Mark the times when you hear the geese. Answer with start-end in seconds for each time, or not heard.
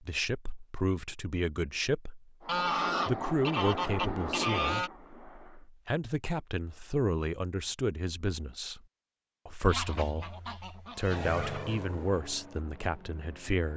2.5-4.9, 9.7-11.7.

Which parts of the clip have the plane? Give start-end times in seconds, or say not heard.
2.4-5.7, 11.0-13.7.